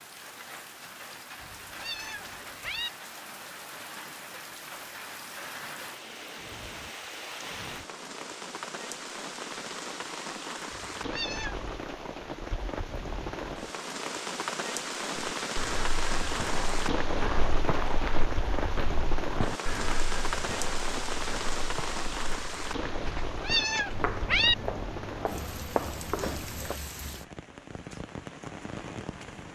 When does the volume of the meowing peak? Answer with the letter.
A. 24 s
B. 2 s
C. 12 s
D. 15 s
A.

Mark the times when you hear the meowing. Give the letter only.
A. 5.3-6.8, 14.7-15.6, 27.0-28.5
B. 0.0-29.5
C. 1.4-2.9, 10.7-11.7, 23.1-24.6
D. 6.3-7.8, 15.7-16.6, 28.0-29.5
C.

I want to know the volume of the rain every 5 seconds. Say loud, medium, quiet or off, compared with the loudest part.
medium, medium, loud, loud, loud, medium.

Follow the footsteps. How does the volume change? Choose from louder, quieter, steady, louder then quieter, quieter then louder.
steady.